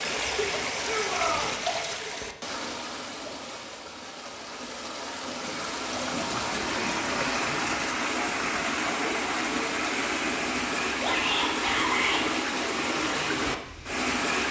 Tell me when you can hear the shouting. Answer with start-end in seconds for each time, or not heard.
0.8-1.5, 11.0-12.2.